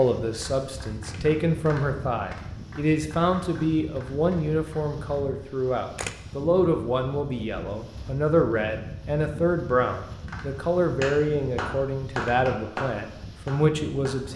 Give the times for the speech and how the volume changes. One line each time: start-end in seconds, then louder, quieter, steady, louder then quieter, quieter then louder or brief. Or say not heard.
0.0-14.3 steady.